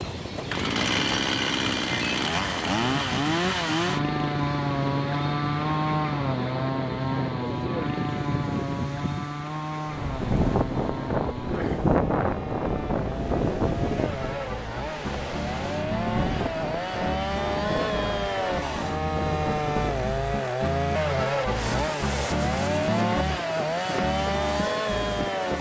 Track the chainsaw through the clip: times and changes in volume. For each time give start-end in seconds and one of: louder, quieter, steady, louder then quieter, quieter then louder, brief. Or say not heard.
0.0-25.5 quieter then louder.